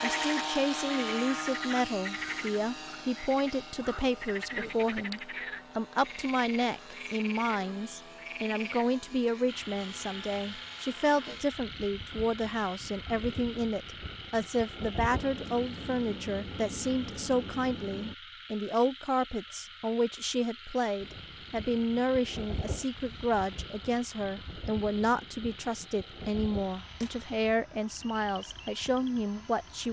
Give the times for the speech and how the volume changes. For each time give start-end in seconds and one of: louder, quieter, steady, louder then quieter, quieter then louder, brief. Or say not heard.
0.0-29.8 steady.